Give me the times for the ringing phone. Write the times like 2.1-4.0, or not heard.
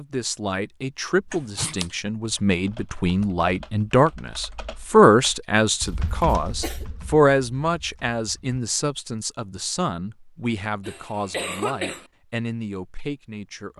not heard.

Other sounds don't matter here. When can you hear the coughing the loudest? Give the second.
12 s.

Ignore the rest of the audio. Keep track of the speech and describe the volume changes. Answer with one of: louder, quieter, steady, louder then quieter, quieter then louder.
louder then quieter.